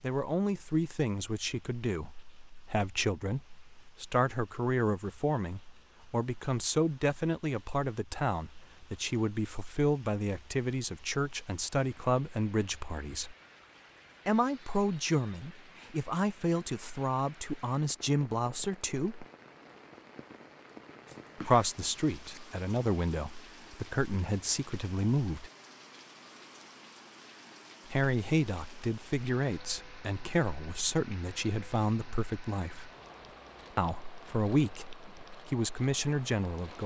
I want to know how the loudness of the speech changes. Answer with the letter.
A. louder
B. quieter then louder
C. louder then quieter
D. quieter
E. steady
E.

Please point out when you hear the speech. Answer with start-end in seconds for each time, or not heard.
0.0-13.3, 14.2-19.2, 21.4-25.5, 27.9-32.9, 33.8-36.8.